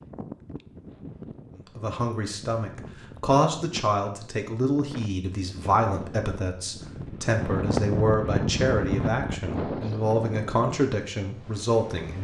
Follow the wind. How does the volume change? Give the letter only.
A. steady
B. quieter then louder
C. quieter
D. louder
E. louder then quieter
E.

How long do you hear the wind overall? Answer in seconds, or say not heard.
12 s.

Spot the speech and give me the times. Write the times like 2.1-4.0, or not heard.
1.6-12.1.